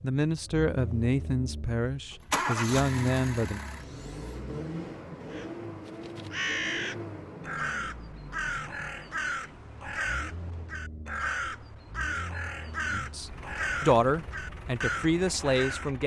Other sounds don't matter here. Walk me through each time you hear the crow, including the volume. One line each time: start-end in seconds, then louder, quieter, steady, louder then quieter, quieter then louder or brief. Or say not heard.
5.3-15.9 steady.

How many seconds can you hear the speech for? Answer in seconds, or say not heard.
7 s.